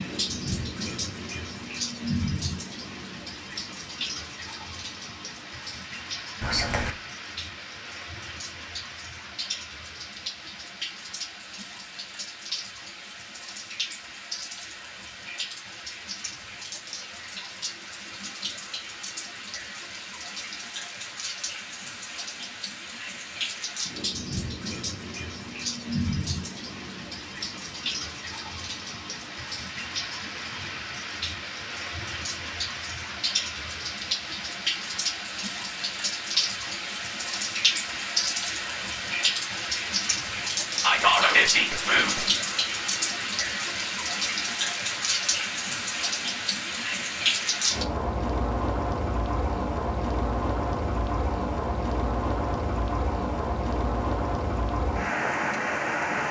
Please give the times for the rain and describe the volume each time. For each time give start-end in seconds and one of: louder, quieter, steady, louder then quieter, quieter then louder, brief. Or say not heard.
0.0-56.2 louder.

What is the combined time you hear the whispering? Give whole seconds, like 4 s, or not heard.
2 s.